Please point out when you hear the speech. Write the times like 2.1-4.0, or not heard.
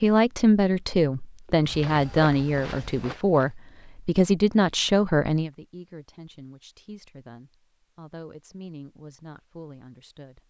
0.0-10.4.